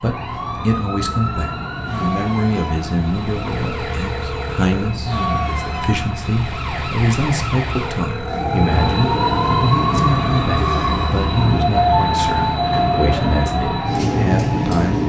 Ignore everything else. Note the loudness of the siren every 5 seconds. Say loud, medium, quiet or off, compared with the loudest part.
medium, loud, loud.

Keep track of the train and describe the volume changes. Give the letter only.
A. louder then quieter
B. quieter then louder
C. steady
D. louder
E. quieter
D.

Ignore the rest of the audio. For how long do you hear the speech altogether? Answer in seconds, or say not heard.
15 s.